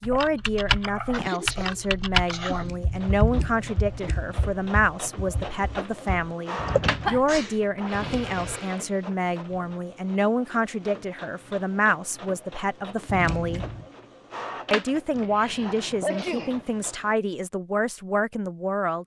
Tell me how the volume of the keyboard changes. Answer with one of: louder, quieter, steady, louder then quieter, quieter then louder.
quieter then louder.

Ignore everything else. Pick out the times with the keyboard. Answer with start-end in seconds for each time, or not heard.
0.0-7.2.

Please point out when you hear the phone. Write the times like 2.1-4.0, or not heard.
not heard.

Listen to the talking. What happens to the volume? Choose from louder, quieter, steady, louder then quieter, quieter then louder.
steady.